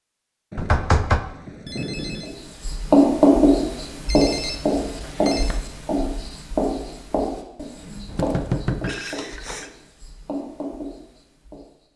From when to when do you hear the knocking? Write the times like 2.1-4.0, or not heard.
0.6-1.2, 5.0-5.6, 8.1-8.9.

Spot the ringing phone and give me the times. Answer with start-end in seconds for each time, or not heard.
0.5-2.4, 4.0-5.5, 8.8-9.7.